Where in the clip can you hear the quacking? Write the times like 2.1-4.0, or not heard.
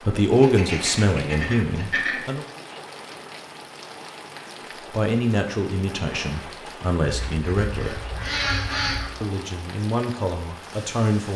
0.3-2.2, 7.0-9.2.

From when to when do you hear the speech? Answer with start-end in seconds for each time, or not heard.
0.0-2.5, 4.9-8.0, 9.2-11.3.